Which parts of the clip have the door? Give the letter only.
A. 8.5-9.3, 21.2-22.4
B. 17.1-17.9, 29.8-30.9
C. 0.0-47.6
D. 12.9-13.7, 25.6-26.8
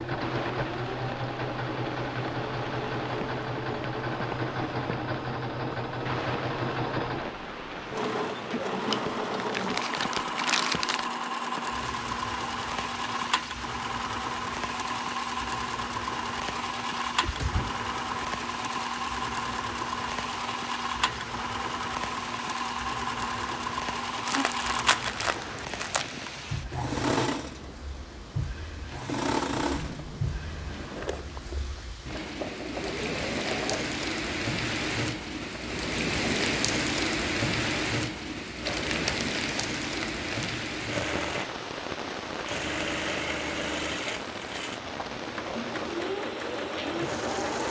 B.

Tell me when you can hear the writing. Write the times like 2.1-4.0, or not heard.
not heard.